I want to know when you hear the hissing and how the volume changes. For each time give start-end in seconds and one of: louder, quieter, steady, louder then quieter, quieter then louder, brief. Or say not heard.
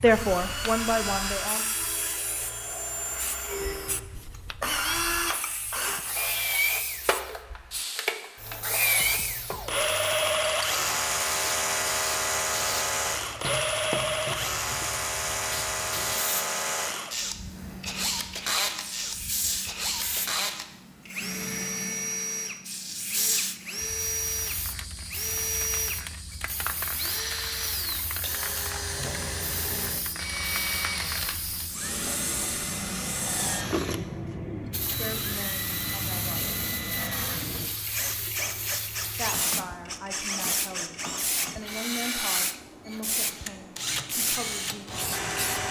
0.0-45.6 louder.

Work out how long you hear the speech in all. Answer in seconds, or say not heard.
9 s.